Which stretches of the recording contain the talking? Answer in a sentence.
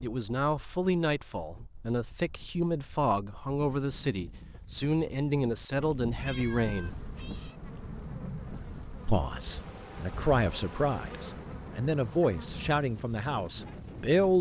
The talking can be heard from 0.0 to 7.0 s and from 9.1 to 14.3 s.